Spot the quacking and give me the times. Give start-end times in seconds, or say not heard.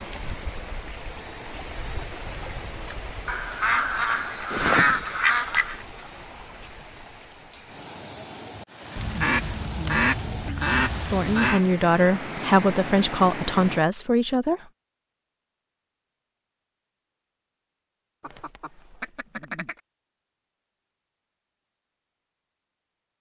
3.2-5.8, 8.9-11.6, 18.2-19.8.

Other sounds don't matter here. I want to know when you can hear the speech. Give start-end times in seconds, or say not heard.
11.1-14.7.